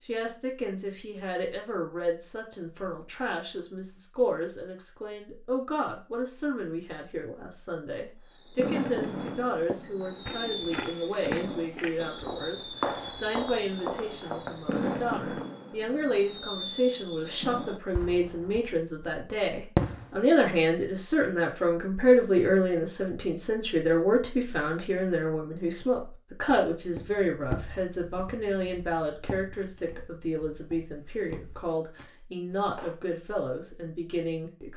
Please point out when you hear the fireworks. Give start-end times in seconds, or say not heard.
8.3-19.1, 19.8-20.2.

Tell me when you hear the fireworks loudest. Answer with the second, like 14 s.
20 s.